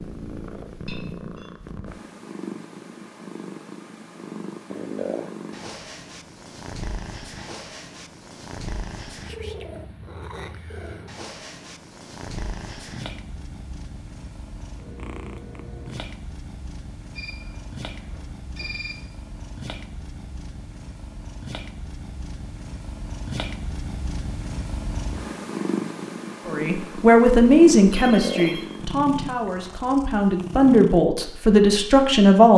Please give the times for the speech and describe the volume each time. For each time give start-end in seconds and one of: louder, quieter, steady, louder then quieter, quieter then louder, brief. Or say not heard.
26.4-32.5 quieter then louder.